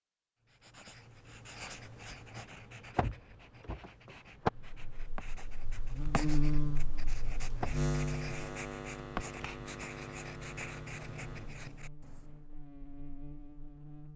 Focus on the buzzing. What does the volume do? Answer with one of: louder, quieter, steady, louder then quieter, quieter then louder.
quieter.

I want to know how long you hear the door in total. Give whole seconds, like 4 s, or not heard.
3 s.